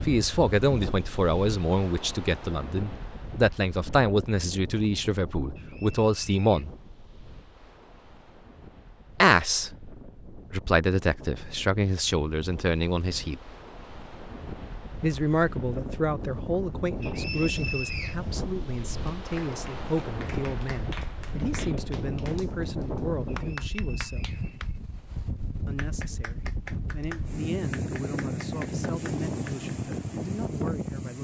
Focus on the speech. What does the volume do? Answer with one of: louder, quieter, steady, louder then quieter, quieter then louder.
quieter.